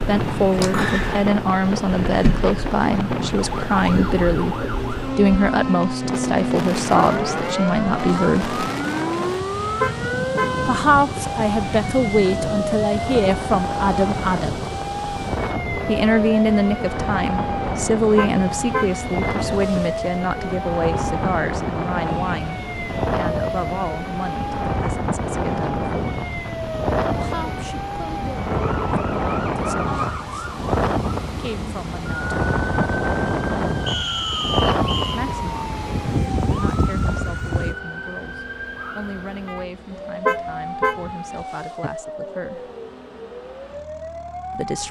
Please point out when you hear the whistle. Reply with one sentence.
You can hear the whistle from 33.9 to 35.2 s.